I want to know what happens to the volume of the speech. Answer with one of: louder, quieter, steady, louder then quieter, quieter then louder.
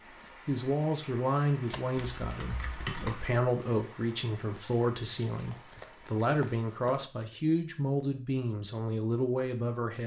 steady.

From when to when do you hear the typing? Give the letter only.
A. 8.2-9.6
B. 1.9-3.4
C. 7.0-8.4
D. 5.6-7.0
B.